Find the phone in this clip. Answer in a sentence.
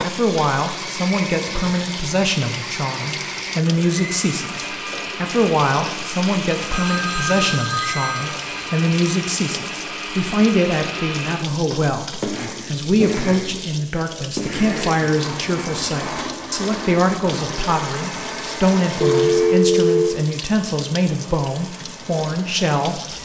You can hear the phone from 6.7 to 8.8 s and from 19.0 to 20.2 s.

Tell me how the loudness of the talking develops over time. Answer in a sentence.
The volume of the talking stays about the same.